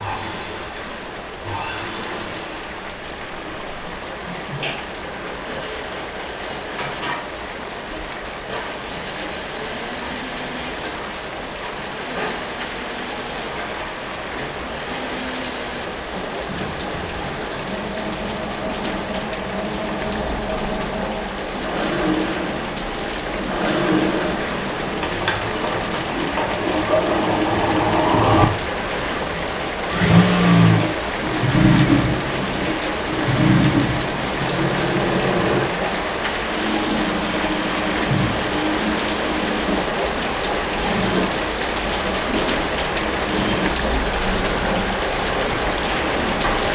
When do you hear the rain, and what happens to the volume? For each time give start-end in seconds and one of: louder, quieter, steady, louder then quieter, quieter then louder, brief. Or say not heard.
0.0-46.7 louder.